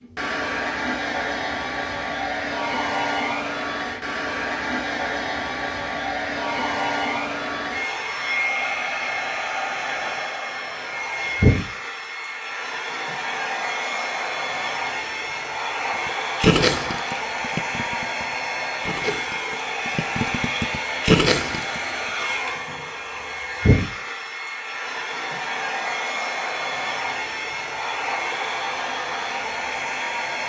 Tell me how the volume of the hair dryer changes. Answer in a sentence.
The volume of the hair dryer stays about the same.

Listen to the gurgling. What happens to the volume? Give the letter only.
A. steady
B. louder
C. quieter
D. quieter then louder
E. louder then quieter
D.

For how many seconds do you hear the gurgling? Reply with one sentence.
You can hear the gurgling for 6 seconds altogether.